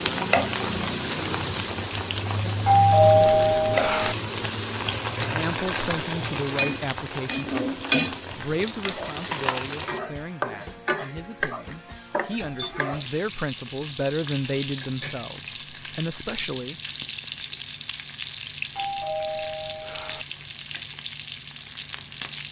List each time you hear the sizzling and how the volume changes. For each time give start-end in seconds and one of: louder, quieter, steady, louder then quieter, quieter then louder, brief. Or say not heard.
0.0-22.4 quieter.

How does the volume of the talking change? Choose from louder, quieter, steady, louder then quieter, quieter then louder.
quieter then louder.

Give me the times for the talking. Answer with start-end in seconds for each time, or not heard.
5.2-16.8.